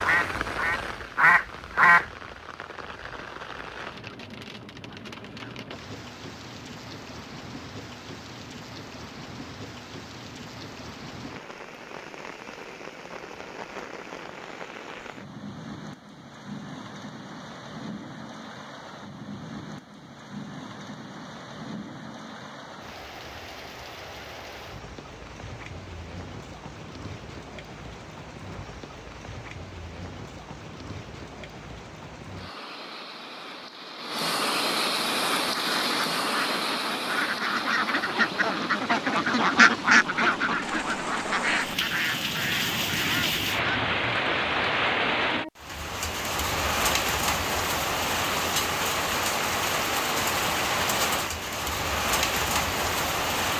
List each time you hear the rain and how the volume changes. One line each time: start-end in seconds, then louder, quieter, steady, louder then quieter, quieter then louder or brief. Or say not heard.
0.0-53.5 louder.